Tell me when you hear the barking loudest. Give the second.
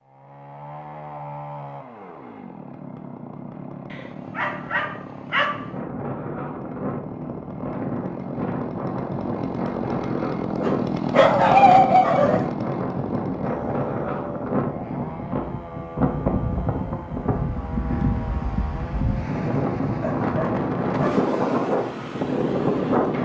12 s.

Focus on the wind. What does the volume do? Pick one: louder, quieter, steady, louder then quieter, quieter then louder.
louder.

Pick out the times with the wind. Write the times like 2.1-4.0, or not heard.
5.5-23.2.